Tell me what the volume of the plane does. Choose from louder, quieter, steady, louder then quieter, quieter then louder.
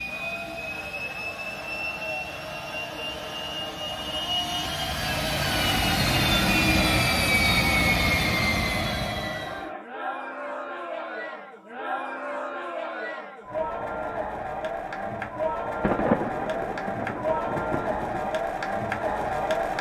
louder.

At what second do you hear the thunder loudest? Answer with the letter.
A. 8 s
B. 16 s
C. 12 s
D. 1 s
B.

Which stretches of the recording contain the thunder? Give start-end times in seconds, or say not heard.
15.8-18.3.